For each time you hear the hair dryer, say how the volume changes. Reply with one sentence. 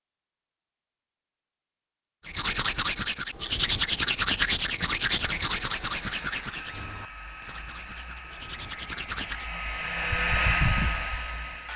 You can hear the hair dryer from 5.2 to 11.7 s, getting louder.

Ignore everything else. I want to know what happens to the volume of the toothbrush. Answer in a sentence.
The volume of the toothbrush goes down.